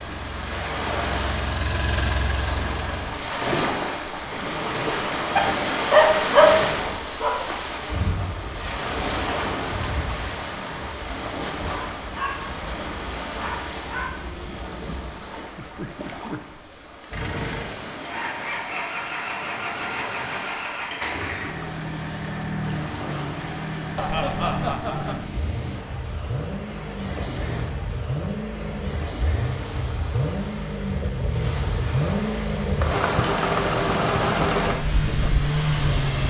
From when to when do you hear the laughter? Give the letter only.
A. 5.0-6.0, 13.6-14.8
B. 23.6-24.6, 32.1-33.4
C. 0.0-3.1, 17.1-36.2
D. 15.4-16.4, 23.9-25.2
D.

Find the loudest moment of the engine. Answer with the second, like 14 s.
34 s.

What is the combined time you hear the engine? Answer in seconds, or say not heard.
22 s.